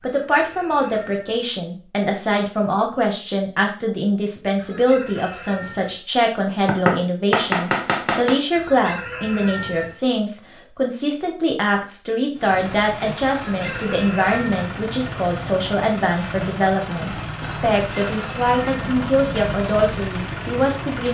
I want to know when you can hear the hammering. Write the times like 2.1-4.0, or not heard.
6.7-8.4.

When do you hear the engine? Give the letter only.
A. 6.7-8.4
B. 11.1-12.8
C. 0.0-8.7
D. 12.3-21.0
D.